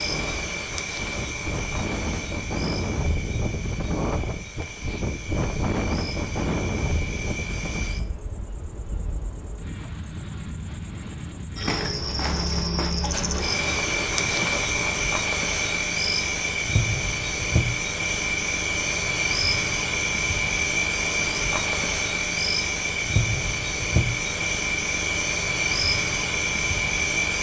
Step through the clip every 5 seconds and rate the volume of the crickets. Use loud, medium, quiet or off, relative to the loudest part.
medium, quiet, loud, loud, loud, loud.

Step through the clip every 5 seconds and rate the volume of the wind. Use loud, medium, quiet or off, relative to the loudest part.
loud, loud, medium, off, off, off.